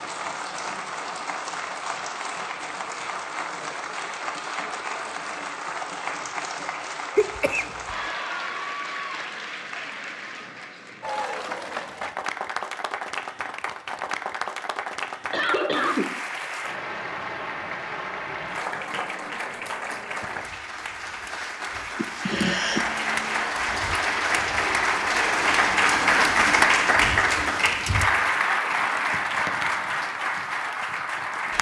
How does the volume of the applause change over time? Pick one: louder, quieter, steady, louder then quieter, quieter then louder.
louder.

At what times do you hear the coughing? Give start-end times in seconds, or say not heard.
7.2-8.1, 15.3-16.2, 21.9-22.9.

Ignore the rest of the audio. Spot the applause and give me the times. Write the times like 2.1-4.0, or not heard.
0.0-31.5.